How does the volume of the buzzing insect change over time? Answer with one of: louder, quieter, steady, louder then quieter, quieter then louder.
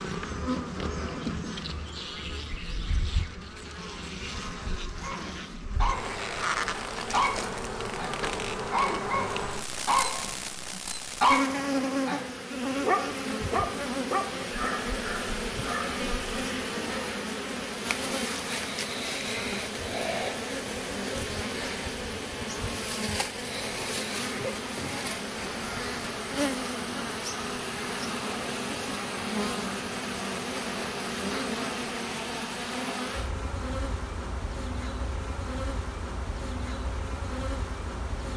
steady.